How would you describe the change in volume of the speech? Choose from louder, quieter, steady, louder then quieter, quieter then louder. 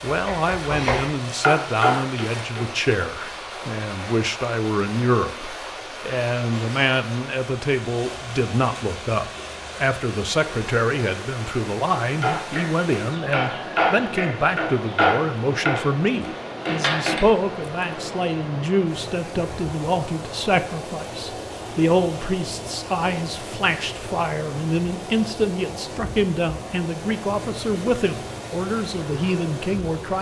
steady.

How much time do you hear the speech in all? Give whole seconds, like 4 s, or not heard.
30 s.